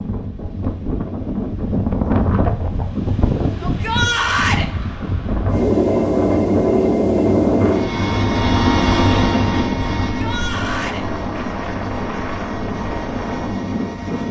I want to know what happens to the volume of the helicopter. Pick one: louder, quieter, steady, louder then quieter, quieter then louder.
quieter.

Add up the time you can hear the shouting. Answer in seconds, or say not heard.
2 s.